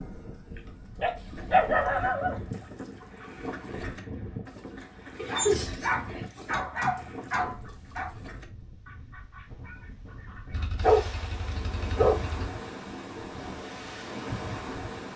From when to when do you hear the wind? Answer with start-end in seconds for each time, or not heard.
0.0-15.1.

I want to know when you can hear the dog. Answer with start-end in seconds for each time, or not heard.
1.0-2.4, 5.2-8.1, 10.5-12.5.